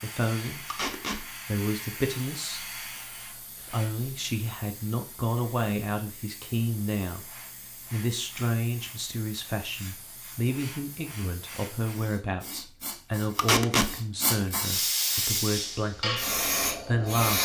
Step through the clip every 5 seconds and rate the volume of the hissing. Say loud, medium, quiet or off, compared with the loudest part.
quiet, quiet, medium, loud.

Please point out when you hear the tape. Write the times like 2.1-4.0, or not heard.
0.7-1.2, 13.3-13.9.